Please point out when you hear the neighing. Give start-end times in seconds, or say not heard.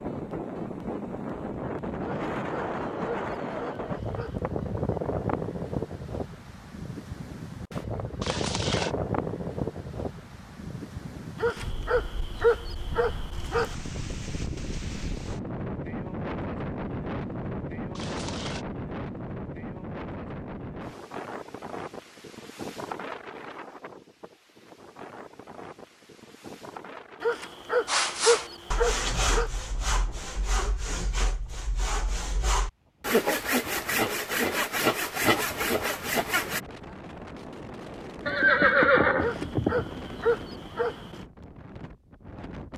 8.2-8.9, 17.9-18.6, 38.2-40.0.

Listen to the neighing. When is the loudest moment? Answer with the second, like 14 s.
39 s.